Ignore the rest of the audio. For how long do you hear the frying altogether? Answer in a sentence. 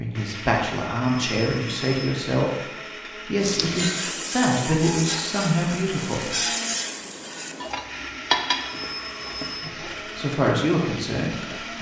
You can hear the frying for 8 seconds altogether.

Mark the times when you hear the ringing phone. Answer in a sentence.
You can hear the ringing phone from 1.1 to 2.1 s and from 8.6 to 9.7 s.